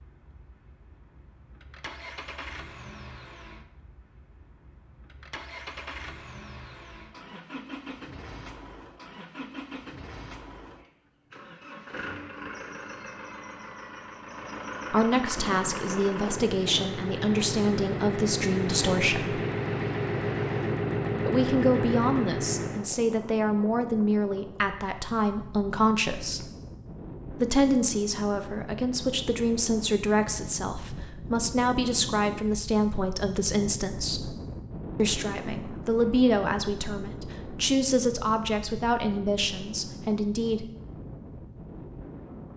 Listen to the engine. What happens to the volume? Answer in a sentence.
The volume of the engine goes up.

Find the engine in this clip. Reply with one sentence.
The engine can be heard from 0.0 to 22.9 s.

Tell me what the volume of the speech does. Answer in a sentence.
The volume of the speech stays about the same.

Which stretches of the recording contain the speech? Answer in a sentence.
The speech can be heard from 14.9 to 19.4 s, from 21.2 to 26.5 s, from 27.3 to 34.4 s and from 35.0 to 40.6 s.